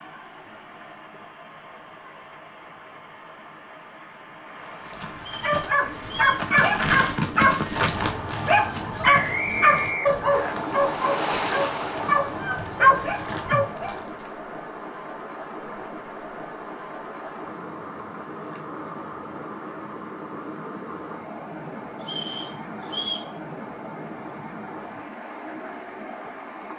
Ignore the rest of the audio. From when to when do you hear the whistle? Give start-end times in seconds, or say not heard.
5.2-6.5, 9.2-10.6, 22.0-23.3.